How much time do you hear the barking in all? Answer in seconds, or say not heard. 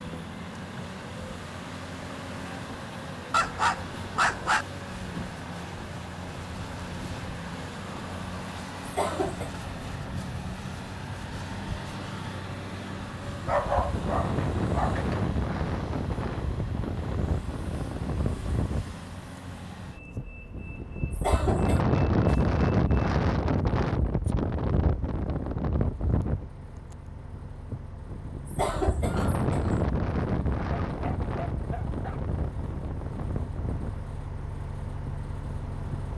4 s.